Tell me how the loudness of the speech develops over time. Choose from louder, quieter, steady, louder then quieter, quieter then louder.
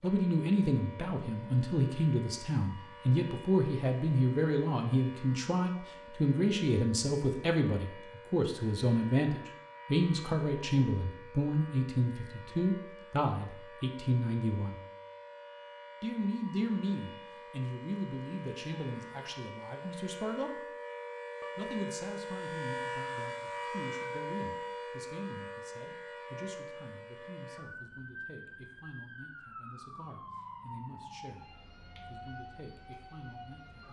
quieter.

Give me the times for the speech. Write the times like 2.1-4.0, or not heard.
0.0-14.8, 16.0-20.7, 21.6-33.8.